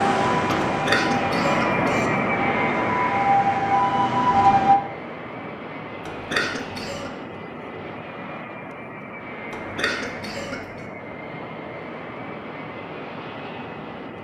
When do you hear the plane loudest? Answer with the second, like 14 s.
2 s.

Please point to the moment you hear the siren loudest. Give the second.
4 s.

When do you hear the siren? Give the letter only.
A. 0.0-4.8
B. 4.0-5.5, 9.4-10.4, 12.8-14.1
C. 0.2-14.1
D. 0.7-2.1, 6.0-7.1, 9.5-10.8
A.